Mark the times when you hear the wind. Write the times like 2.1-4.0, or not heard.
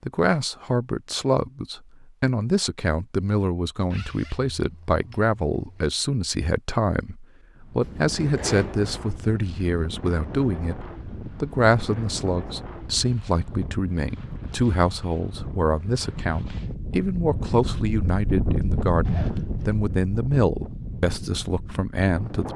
7.5-22.5.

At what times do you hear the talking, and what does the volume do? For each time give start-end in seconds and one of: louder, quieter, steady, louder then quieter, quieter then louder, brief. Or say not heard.
0.0-22.5 steady.